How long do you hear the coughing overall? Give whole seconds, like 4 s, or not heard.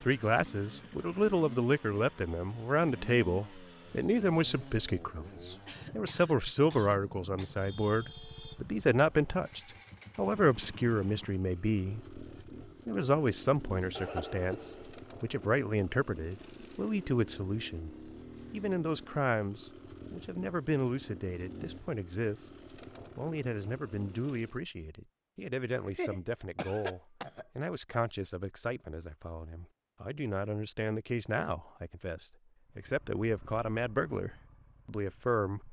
5 s.